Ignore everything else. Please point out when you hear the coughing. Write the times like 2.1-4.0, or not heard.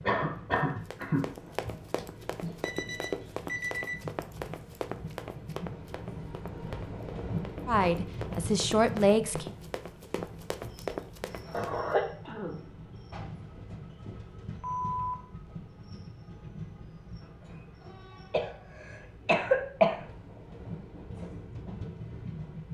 0.1-1.8, 11.5-12.6, 18.3-19.9.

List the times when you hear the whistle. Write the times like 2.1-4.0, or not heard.
not heard.